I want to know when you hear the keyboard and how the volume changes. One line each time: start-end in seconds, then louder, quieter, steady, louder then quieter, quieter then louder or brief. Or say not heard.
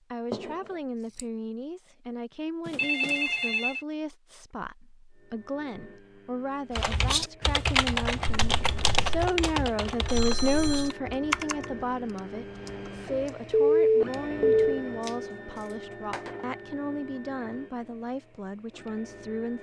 6.8-13.2 quieter.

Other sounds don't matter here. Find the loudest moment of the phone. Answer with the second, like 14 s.
14 s.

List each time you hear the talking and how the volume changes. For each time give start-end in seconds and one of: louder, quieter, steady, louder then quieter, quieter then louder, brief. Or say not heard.
0.1-19.5 louder then quieter.